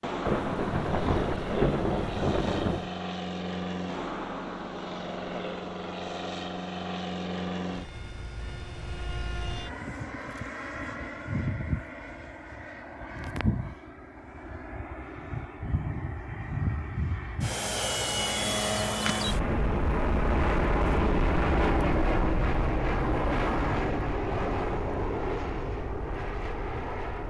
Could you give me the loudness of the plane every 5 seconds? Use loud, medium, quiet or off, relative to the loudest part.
medium, medium, medium, loud, loud, medium.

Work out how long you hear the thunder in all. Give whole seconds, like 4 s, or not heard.
3 s.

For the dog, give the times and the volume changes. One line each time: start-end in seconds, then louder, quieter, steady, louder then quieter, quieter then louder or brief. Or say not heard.
not heard.